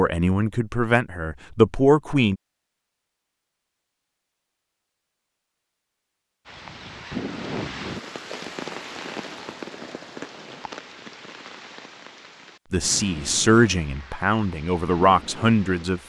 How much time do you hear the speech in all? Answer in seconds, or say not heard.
6 s.